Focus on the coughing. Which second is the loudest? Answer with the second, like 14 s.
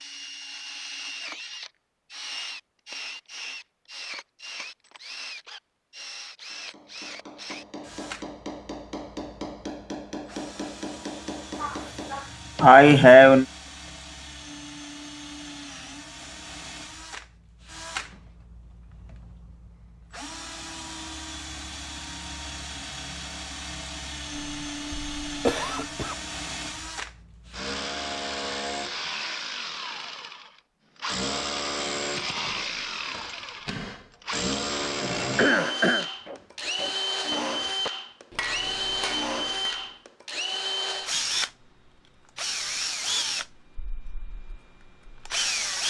13 s.